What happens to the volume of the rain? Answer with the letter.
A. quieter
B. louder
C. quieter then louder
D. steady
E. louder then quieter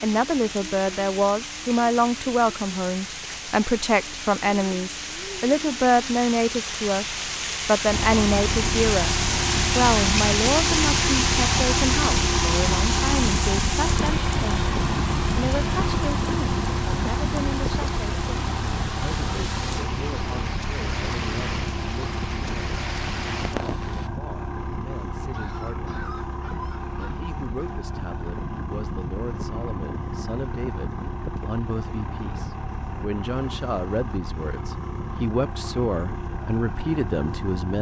E.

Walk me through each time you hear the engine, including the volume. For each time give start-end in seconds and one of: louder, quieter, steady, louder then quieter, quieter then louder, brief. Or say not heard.
7.8-37.7 quieter.